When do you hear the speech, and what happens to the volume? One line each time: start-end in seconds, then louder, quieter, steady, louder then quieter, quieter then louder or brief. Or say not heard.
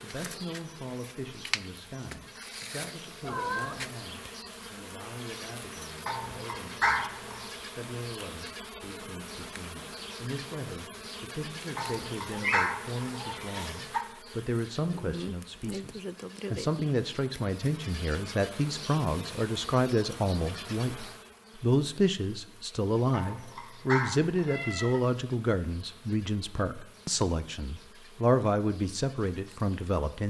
0.0-30.2 louder.